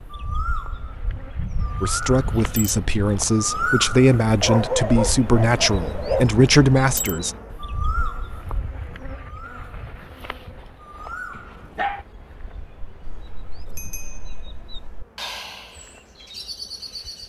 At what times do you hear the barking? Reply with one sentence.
The barking can be heard from 4.4 to 6.3 s and from 11.3 to 12.1 s.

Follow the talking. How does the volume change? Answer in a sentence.
The volume of the talking goes up.